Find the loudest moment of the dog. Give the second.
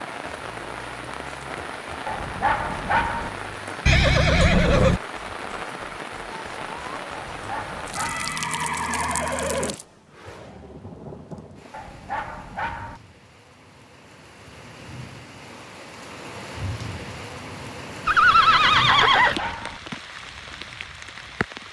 3 s.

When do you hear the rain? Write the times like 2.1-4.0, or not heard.
0.0-21.6.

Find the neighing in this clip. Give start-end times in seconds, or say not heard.
3.9-5.0, 8.0-9.8, 18.1-19.6.